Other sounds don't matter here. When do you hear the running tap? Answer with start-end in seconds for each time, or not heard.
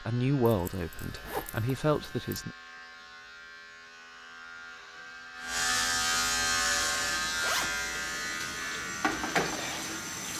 6.7-10.3.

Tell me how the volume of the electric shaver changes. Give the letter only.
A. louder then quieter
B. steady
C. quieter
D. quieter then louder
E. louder
A.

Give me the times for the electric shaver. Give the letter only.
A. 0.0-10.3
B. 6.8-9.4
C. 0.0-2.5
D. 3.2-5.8
A.